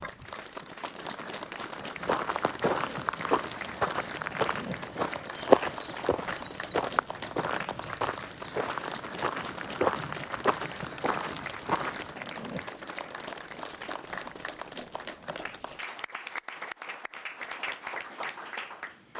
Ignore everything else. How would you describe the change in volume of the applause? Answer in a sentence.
The loudness of the applause stays about the same.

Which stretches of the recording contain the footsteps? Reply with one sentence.
You can hear the footsteps from 1.9 to 12.2 s.